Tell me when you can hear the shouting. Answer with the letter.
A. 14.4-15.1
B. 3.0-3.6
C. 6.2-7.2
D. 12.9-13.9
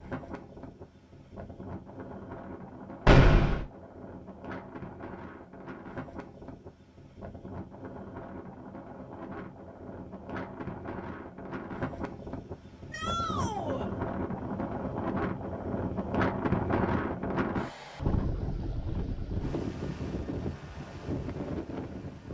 D.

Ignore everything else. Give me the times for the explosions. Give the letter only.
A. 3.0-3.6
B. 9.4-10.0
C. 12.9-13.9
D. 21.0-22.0
A.